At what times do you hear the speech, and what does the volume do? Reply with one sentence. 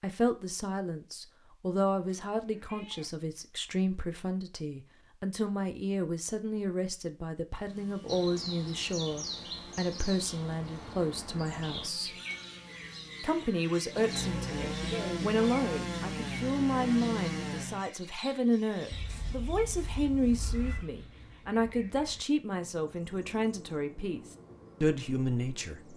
The speech can be heard from 0.0 to 12.2 s, at a steady volume; and from 13.2 to 25.9 s, at a steady volume.